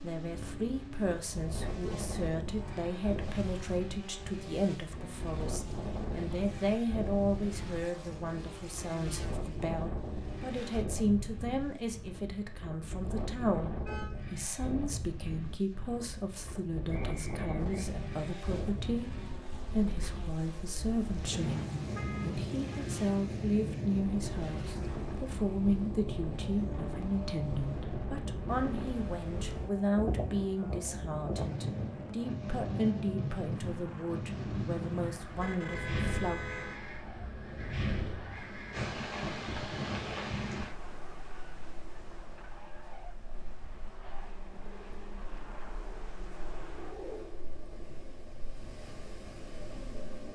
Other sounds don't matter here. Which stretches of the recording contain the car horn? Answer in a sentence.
The car horn can be heard from 13.7 to 14.1 s, from 21.3 to 22.9 s and from 35.3 to 36.8 s.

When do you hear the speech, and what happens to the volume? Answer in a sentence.
The speech can be heard from 0.0 to 36.4 s, at a steady volume.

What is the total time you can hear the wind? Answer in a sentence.
You can hear the wind for 50 seconds altogether.